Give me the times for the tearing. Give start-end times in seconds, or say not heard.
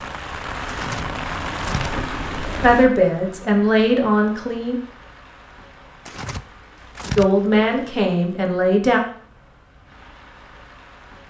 0.7-1.9, 6.0-7.2.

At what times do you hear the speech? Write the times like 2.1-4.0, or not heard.
2.6-4.8, 7.2-9.0.